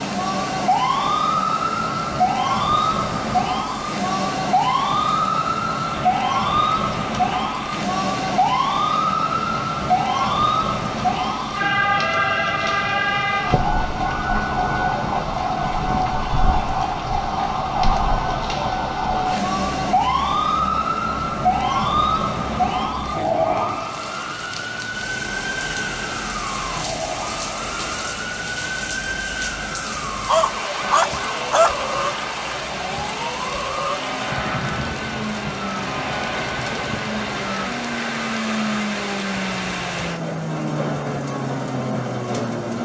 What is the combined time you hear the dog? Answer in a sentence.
The dog can be heard for 2 seconds in total.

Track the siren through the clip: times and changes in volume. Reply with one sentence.
You can hear the siren from 0.0 to 42.8 s, getting quieter.